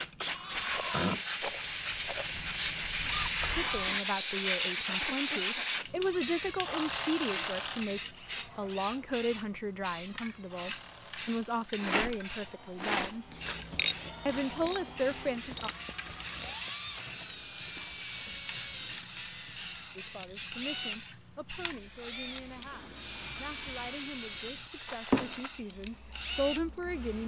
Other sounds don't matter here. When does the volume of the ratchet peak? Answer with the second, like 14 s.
14 s.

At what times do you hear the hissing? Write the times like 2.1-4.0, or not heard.
0.0-27.2.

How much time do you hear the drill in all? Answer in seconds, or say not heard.
27 s.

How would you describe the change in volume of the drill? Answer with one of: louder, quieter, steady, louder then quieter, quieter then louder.
quieter then louder.